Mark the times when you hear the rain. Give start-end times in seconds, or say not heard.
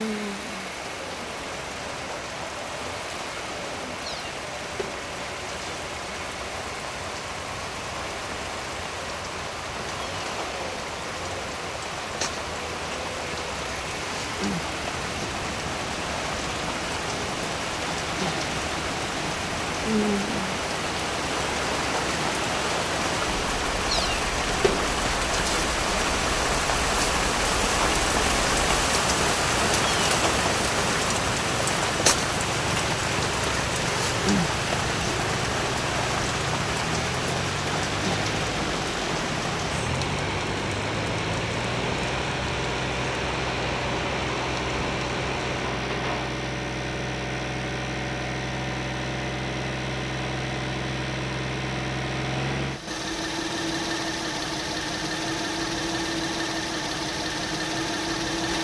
0.0-46.4.